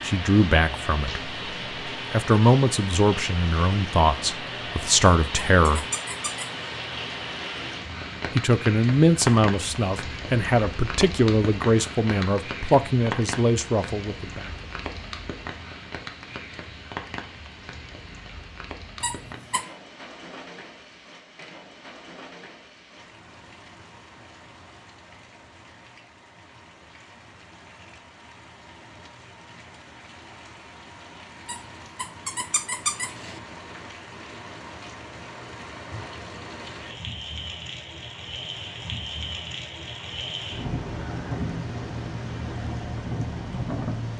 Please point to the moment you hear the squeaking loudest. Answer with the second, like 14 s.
33 s.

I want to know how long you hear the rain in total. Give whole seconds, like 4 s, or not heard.
44 s.